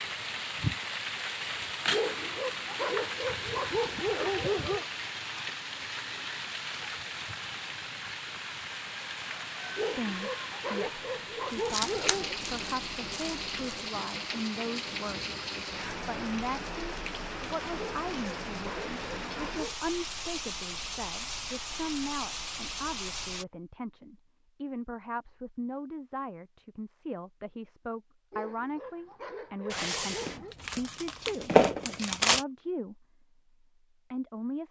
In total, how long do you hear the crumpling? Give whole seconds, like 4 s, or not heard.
5 s.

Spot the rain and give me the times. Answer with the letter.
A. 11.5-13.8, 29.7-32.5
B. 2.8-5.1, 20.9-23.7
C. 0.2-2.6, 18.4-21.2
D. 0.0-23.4
D.